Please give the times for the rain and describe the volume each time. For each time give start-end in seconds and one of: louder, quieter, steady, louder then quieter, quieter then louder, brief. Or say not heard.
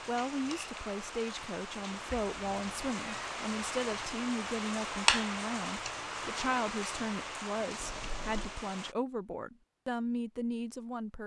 0.0-8.9 louder then quieter.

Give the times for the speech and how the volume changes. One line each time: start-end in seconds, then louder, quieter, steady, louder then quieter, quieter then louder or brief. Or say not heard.
0.1-11.2 steady.